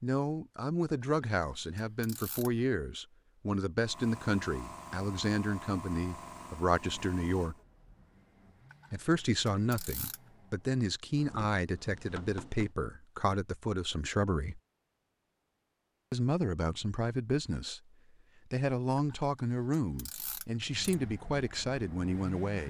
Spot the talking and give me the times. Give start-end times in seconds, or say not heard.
0.0-7.5, 8.9-14.6, 16.1-17.8, 18.5-22.6.